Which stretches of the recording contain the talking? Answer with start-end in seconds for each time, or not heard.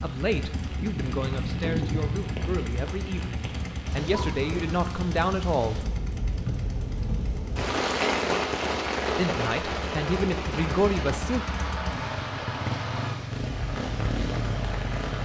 0.0-5.8, 9.2-11.4.